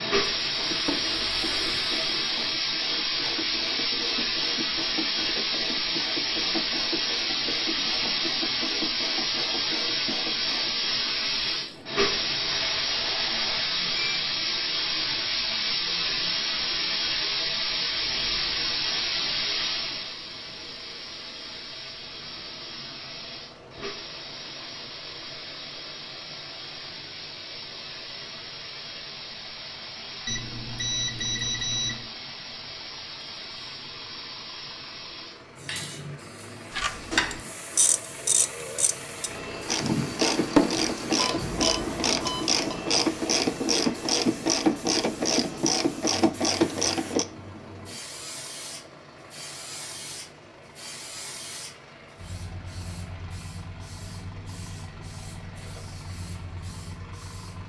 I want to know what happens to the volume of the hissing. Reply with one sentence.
The volume of the hissing goes down.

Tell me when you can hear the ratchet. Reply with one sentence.
You can hear the ratchet from 0.6 to 11.2 s and from 36.7 to 47.2 s.